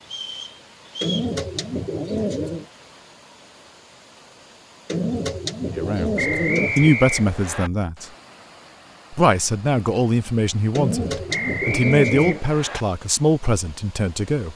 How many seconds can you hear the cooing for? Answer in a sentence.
You can hear the cooing for 5 seconds altogether.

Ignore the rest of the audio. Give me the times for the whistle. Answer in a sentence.
The whistle can be heard from 0.1 to 1.3 s, from 6.2 to 7.7 s and from 11.3 to 12.8 s.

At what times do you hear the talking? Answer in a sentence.
You can hear the talking from 5.7 to 8.1 s and from 9.1 to 14.5 s.